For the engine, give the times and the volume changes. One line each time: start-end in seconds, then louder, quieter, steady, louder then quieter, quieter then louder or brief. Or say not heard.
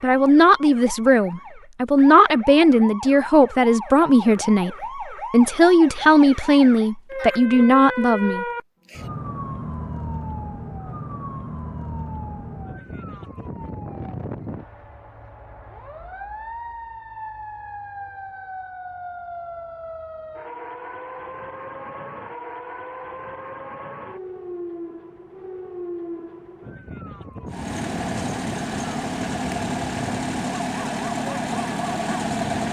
27.4-32.6 steady.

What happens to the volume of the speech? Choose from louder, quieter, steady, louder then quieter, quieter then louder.
steady.